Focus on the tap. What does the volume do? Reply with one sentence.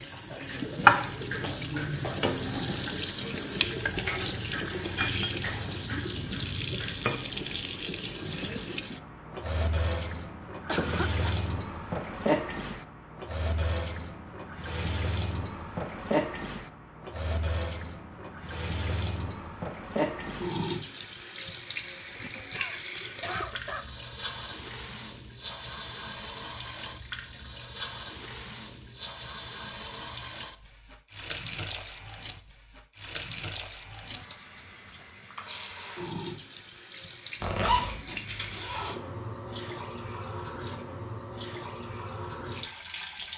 The volume of the tap goes down.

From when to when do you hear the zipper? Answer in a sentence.
You can hear the zipper from 37.4 to 39.0 s.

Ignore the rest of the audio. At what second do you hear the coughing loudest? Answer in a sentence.
The volume of the coughing peaks at 11 seconds.